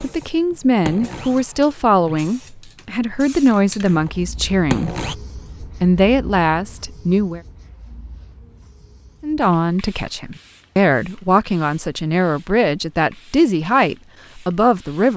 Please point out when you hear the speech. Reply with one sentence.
The speech can be heard from 0.0 to 7.4 s and from 9.2 to 15.1 s.